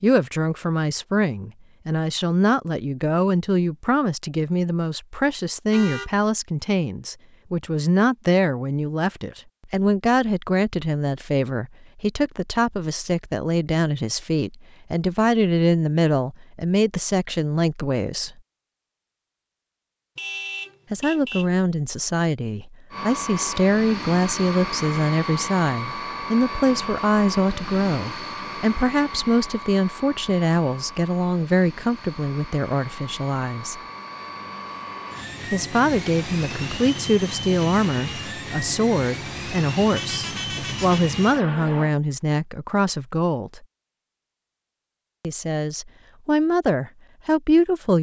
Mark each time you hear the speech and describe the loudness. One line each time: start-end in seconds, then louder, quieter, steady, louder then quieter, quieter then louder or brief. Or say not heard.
0.0-18.4 steady
20.9-33.8 steady
35.5-43.6 steady
45.2-47.9 brief.